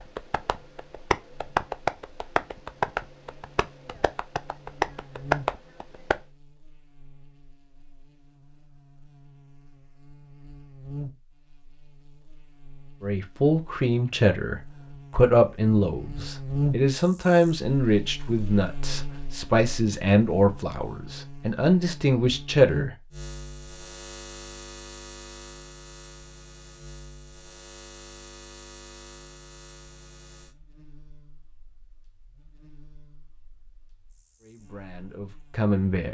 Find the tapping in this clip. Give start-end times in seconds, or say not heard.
0.1-6.2.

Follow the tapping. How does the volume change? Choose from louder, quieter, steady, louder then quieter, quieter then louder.
quieter then louder.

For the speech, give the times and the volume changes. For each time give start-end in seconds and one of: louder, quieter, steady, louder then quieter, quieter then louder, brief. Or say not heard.
13.0-22.9 steady
34.4-36.0 brief.